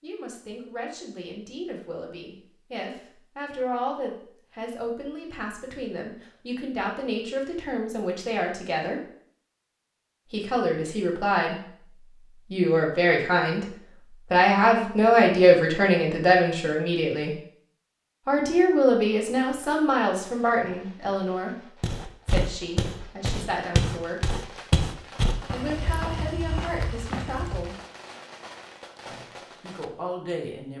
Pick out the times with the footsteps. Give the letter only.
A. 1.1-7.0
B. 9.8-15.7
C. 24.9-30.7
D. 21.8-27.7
D.